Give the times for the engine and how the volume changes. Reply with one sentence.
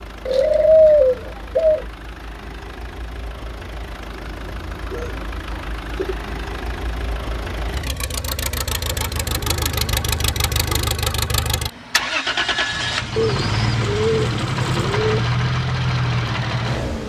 You can hear the engine from 0.0 to 17.0 s, getting louder.